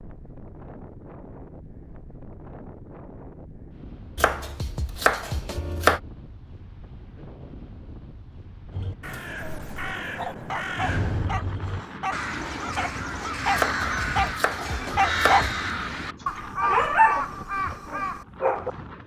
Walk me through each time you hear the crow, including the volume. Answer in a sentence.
The crow can be heard from 8.7 to 18.2 s, getting louder.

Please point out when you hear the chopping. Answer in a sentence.
The chopping can be heard from 4.2 to 6.0 s and from 13.6 to 15.6 s.